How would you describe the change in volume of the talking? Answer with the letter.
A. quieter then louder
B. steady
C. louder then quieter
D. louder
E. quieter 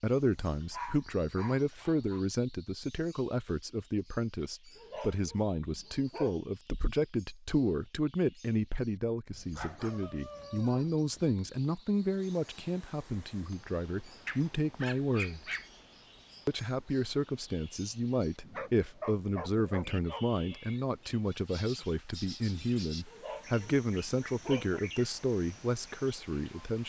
B.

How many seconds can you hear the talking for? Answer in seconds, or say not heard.
26 s.